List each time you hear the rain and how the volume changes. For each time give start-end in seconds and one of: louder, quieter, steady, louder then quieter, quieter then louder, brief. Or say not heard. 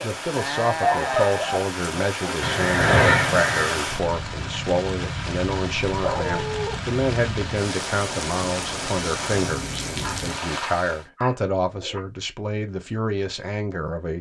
0.0-11.1 steady.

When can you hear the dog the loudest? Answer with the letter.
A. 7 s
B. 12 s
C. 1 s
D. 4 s
C.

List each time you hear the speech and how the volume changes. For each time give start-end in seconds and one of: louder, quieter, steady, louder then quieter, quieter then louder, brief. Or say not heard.
0.0-14.1 steady.